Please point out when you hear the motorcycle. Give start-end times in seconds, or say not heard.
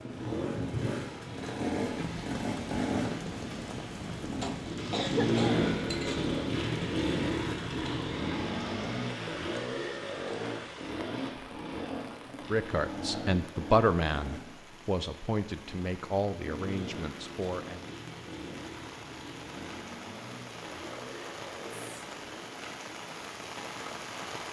0.0-22.6.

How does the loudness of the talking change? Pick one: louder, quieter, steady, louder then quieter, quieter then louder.
quieter.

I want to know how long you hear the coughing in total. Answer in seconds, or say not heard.
2 s.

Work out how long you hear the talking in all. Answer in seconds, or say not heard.
5 s.